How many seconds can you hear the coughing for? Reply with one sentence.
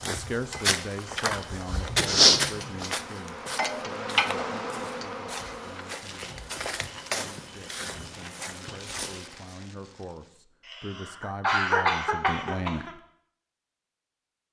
The coughing can be heard for 2 seconds in total.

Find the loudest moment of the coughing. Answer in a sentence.
The loudest moment of the coughing is at 12 seconds.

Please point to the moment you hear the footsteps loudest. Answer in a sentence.
The loudest moment of the footsteps is at 2 seconds.